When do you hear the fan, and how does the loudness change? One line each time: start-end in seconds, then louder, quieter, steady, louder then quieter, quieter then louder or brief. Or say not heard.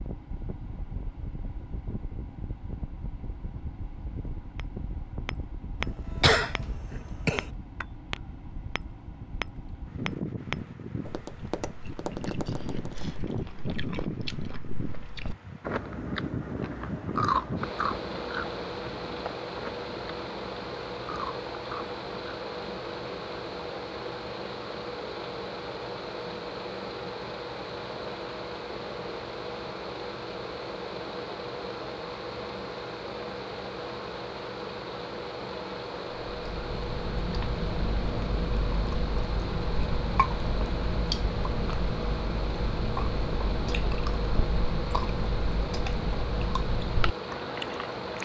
0.0-48.1 louder.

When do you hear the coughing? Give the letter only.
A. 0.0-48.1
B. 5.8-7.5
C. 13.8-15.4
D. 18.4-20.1
B.